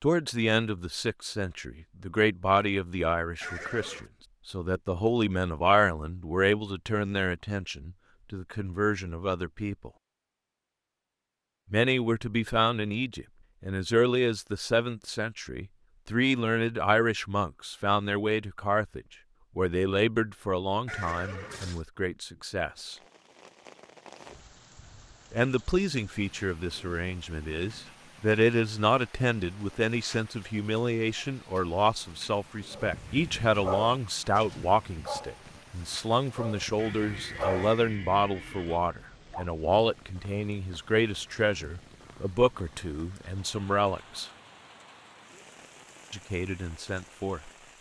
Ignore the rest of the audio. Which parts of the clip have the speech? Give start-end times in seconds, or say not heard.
0.0-9.9, 11.7-22.9, 25.3-44.3, 46.1-47.5.